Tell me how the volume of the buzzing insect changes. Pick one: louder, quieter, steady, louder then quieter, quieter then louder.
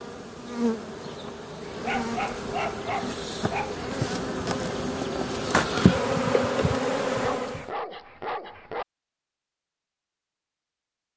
louder.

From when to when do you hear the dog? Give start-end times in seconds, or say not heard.
1.8-3.9, 7.0-8.8.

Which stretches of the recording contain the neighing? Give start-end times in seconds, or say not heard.
not heard.